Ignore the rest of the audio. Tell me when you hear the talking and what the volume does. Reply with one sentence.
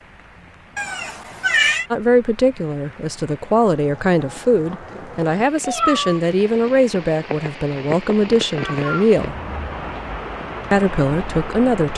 The talking can be heard from 1.9 to 9.3 s, at a steady volume; and briefly from 10.7 to 11.9 s.